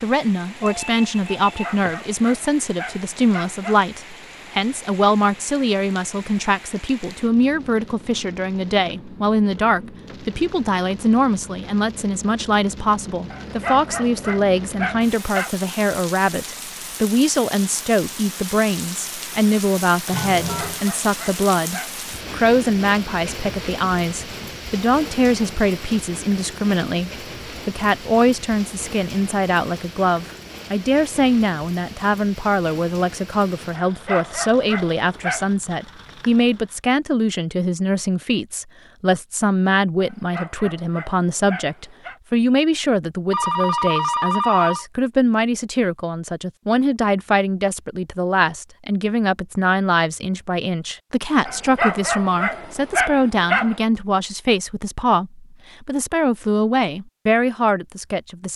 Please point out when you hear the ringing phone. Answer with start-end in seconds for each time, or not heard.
0.6-1.9, 20.1-20.9, 43.3-44.9.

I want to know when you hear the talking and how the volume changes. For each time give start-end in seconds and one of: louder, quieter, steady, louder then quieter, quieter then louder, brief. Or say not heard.
0.0-58.5 steady.